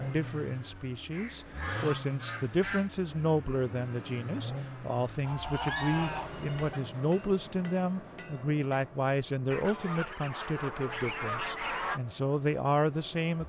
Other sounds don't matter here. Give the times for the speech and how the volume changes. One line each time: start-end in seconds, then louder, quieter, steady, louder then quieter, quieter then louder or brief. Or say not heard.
0.0-13.4 steady.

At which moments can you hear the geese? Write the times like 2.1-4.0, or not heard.
1.1-2.9, 5.2-6.8, 9.5-12.0.